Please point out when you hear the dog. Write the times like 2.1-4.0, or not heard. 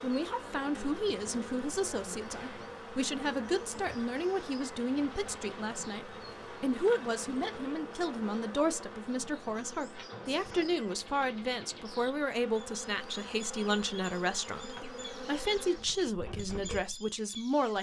not heard.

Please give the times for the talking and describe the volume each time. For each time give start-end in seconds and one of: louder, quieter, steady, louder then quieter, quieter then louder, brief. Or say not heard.
0.0-17.7 steady.